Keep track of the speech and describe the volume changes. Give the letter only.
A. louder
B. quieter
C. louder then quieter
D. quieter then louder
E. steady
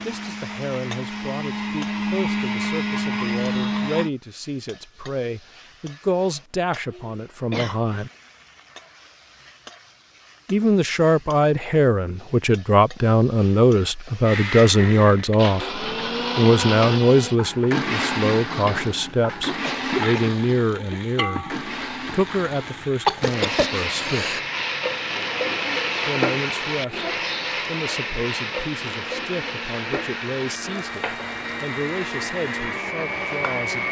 C.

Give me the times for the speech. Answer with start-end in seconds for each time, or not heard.
0.0-8.1, 10.4-24.4, 26.1-33.8.